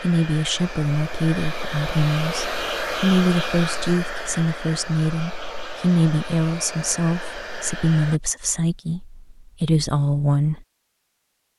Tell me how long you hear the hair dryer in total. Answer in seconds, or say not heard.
8 s.